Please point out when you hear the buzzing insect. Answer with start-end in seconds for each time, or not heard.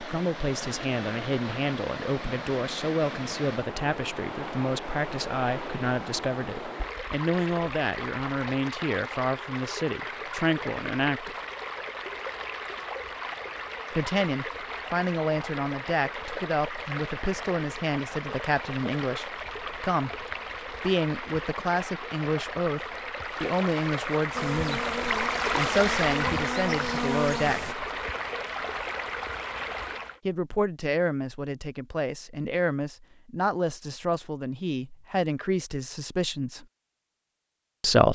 24.3-27.8.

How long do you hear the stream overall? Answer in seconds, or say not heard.
30 s.